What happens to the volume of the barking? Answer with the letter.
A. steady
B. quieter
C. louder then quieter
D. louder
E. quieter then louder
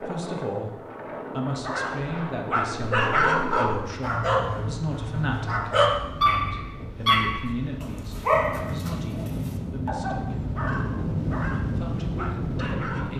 B.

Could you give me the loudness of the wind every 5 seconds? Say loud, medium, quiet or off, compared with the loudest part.
medium, medium, loud.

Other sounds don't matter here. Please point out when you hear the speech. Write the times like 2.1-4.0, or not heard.
0.0-10.5, 11.8-13.1.